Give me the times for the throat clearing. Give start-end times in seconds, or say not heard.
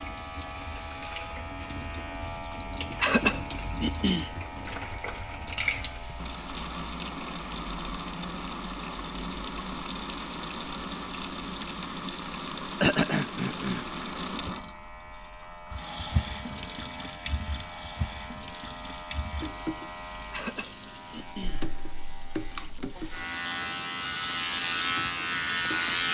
3.0-4.3, 12.8-13.8, 20.3-21.6.